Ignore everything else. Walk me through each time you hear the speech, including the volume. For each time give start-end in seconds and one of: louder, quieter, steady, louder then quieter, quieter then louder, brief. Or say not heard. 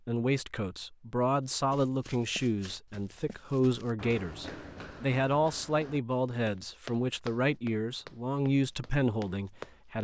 0.1-9.9 steady.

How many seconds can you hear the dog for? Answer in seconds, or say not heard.
not heard.